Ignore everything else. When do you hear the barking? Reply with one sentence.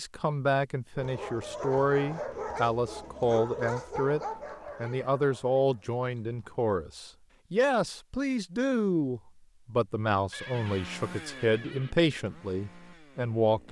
The barking can be heard from 0.9 to 6.4 s.